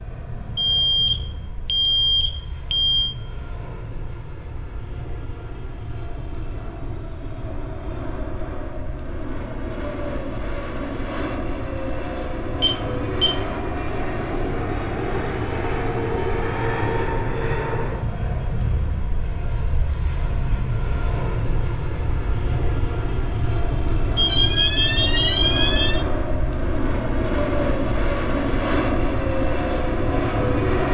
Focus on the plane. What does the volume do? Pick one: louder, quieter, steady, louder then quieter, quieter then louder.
louder.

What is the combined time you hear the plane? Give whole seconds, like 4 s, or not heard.
31 s.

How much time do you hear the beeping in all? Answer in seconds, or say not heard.
5 s.